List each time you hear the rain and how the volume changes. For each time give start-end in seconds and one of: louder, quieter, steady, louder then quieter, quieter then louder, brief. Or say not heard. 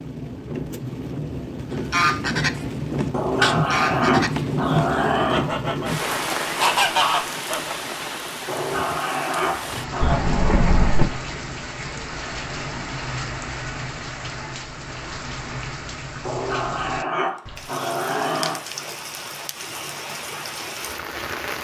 0.0-21.6 quieter.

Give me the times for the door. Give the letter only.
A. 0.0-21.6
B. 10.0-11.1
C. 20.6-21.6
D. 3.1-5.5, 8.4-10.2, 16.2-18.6
B.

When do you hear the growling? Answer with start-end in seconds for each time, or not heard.
3.1-5.5, 8.4-10.2, 16.2-18.6.